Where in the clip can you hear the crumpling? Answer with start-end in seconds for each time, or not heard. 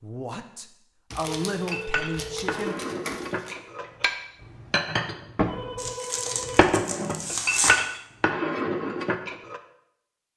1.1-3.5, 5.8-7.8.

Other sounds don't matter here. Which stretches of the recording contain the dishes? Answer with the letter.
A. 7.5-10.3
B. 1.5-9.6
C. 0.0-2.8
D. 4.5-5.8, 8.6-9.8
B.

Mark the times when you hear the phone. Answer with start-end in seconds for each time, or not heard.
1.4-2.8, 5.5-6.7.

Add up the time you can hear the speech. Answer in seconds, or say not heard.
3 s.